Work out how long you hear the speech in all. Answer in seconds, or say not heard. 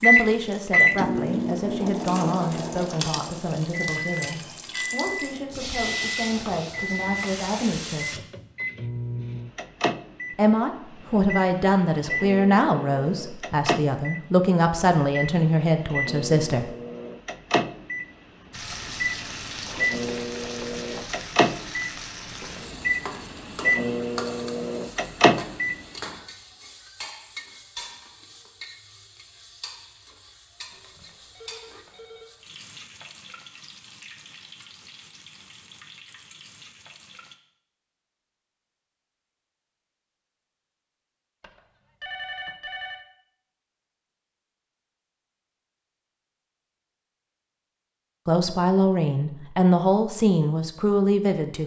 18 s.